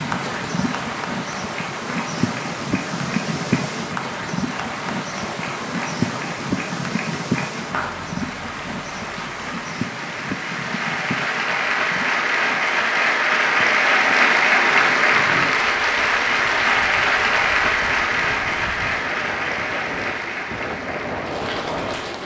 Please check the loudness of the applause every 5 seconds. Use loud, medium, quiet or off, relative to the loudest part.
quiet, quiet, loud, loud, medium.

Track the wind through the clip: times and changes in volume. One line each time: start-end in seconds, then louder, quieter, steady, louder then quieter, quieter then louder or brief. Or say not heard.
0.0-22.2 quieter then louder.